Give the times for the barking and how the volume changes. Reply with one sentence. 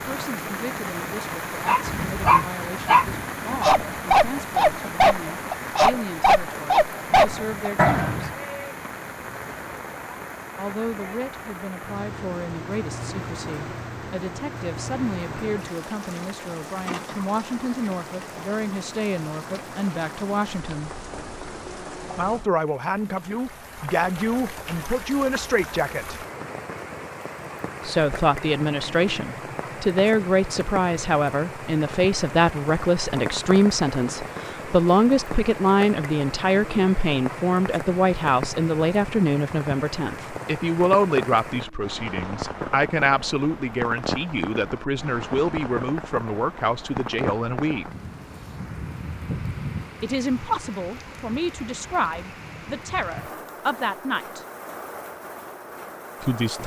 You can hear the barking from 1.6 to 8.3 s, at a steady volume.